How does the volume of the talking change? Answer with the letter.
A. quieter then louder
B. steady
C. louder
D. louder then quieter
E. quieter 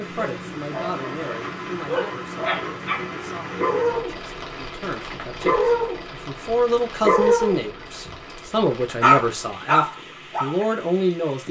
A.